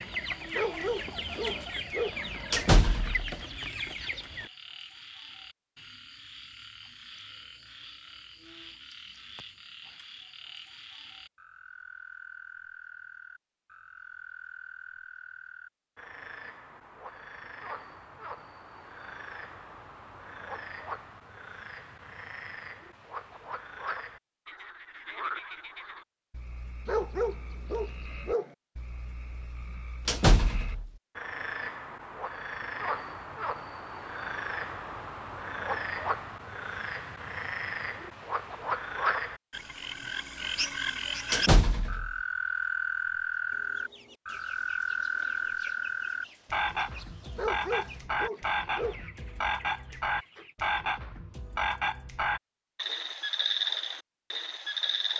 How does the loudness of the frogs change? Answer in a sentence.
The volume of the frogs goes up.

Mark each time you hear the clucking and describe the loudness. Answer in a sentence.
The clucking can be heard from 0.0 to 4.5 s, at a steady volume; and from 43.5 to 50.5 s, at a steady volume.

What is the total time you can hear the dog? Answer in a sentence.
The dog can be heard for 5 seconds in total.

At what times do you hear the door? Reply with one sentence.
You can hear the door from 2.5 to 3.4 s, from 30.1 to 30.9 s and from 41.3 to 42.1 s.